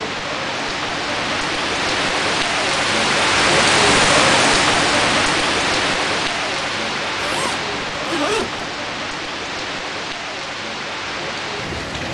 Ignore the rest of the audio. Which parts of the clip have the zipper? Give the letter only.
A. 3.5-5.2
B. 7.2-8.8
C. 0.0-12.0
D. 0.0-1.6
B.